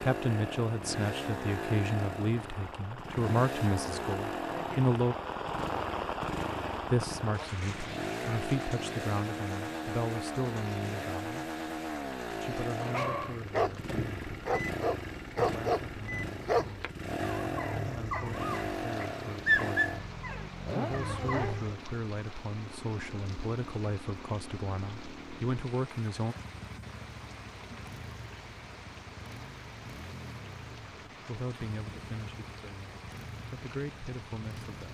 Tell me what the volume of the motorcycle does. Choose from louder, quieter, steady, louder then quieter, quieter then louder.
quieter.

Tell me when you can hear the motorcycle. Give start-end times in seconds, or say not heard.
0.0-34.9.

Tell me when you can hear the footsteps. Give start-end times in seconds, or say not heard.
not heard.